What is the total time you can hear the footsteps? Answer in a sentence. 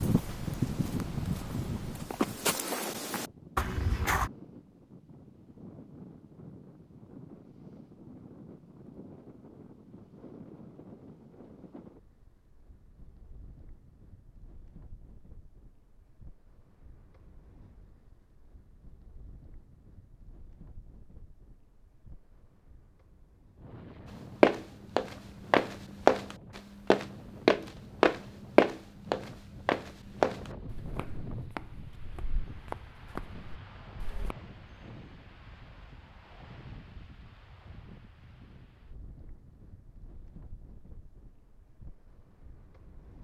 You can hear the footsteps for 14 seconds altogether.